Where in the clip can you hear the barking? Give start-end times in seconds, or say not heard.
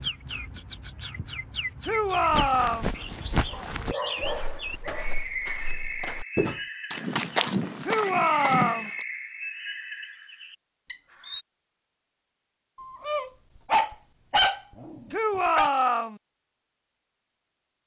3.5-5.2, 12.8-15.7.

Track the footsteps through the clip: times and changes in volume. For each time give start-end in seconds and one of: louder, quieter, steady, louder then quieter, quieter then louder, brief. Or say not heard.
2.2-9.1 quieter then louder.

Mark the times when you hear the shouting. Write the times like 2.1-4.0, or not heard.
1.8-2.9, 7.8-8.9, 15.1-16.2.